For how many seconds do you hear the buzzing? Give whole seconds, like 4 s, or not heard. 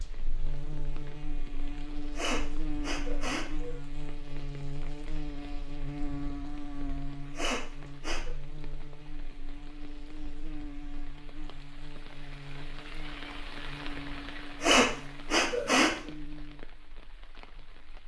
18 s.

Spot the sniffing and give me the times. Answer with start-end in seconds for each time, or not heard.
2.1-3.8, 7.3-8.3, 14.6-15.9.